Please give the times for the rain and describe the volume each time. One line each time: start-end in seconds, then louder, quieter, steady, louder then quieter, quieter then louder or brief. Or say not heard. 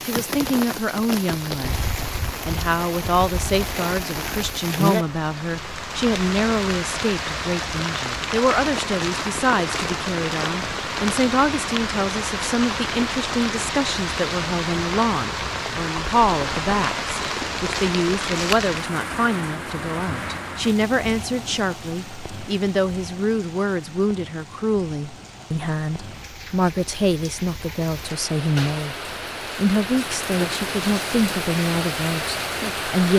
0.0-33.1 quieter then louder.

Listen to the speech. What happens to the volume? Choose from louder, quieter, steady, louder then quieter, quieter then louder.
steady.